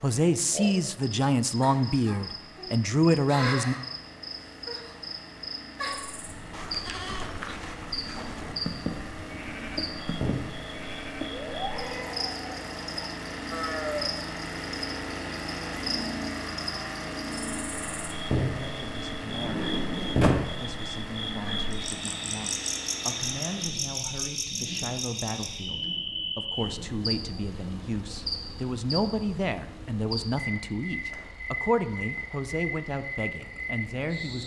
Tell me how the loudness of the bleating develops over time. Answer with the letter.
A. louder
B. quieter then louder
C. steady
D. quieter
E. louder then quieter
C.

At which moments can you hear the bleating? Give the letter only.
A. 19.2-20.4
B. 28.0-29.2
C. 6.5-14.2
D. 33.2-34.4
C.